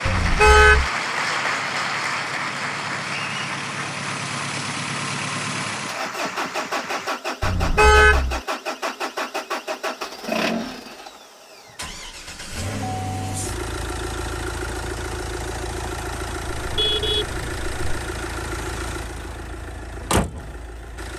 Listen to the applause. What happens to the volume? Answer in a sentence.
The volume of the applause goes down.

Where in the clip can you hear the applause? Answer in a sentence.
You can hear the applause from 0.0 to 7.1 s.